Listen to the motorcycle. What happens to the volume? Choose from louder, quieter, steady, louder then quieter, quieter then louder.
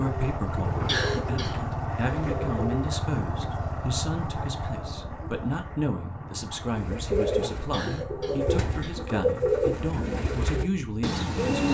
quieter.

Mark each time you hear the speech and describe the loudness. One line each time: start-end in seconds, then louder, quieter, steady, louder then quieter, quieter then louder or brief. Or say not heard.
0.0-11.4 steady.